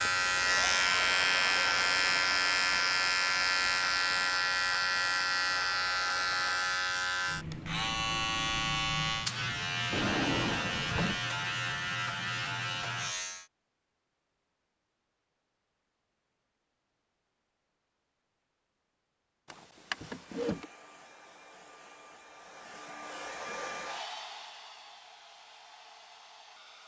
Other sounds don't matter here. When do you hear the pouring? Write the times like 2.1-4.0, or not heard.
not heard.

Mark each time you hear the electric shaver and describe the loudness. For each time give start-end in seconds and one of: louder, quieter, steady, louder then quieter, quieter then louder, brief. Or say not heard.
0.0-13.4 quieter.